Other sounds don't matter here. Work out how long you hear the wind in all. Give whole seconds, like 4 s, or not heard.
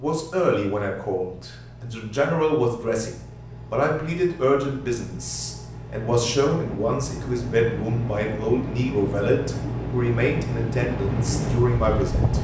6 s.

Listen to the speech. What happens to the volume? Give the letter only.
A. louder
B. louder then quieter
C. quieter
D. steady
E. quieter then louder
D.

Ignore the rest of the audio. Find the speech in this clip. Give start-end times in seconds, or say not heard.
0.0-12.3.